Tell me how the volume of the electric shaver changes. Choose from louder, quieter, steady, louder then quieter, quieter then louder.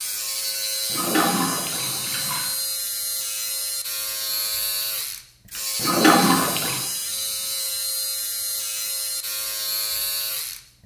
steady.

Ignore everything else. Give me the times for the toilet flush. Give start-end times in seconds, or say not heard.
0.9-2.5, 5.8-6.8.